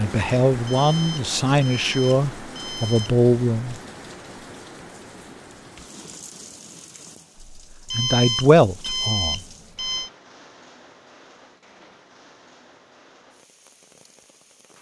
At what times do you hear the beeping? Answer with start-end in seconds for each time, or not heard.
0.7-3.2, 7.8-10.1.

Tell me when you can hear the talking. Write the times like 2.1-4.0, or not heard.
0.0-3.8, 7.5-9.4.